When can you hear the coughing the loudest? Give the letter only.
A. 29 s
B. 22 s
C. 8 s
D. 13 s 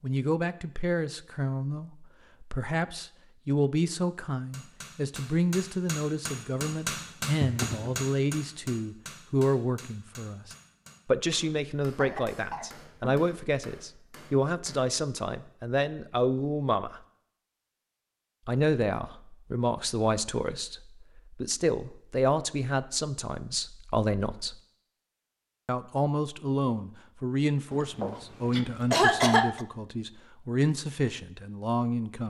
A.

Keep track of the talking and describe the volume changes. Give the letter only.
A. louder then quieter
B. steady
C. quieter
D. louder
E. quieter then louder
B.